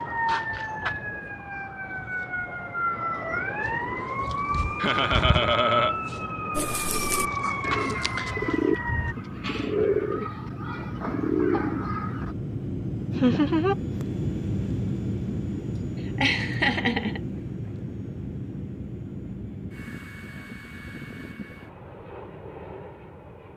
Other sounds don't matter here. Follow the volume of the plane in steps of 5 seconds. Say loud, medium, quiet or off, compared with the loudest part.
quiet, medium, loud, loud, medium.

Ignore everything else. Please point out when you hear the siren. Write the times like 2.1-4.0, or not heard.
0.0-9.2.